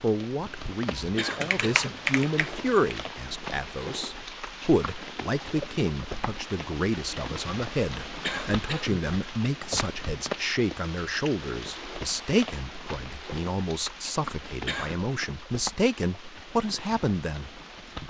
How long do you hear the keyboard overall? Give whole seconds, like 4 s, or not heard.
2 s.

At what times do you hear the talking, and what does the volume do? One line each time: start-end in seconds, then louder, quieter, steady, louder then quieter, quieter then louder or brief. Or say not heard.
0.0-18.0 steady.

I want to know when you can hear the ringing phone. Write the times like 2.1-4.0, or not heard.
not heard.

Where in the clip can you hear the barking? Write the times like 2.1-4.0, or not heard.
not heard.